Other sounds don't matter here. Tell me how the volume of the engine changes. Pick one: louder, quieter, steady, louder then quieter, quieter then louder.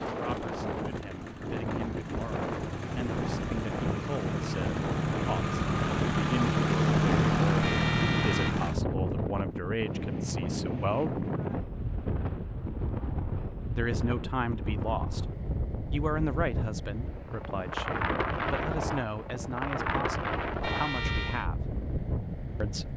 louder.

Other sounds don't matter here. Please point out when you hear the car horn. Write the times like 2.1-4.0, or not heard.
7.6-8.6, 20.6-21.4.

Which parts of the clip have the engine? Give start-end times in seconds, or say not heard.
0.0-8.8.